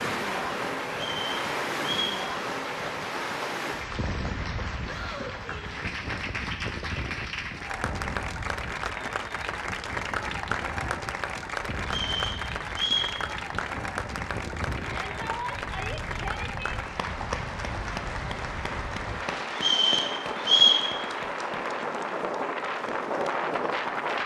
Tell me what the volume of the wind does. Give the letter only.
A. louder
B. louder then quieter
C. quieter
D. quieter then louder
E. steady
D.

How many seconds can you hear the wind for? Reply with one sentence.
You can hear the wind for 24 seconds altogether.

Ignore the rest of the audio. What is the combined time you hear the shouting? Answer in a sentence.
The shouting can be heard for 3 seconds in total.